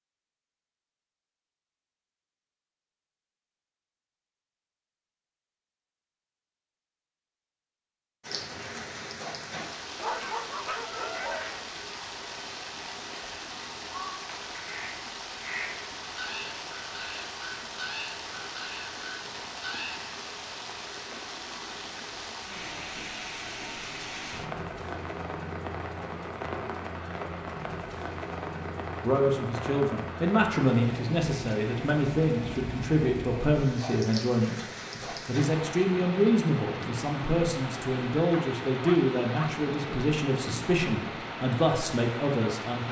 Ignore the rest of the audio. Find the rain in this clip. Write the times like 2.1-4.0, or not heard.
8.2-42.8.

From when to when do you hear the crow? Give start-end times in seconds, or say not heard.
13.8-20.0.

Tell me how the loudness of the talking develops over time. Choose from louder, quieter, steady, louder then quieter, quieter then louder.
steady.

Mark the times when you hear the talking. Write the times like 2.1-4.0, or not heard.
29.0-42.8.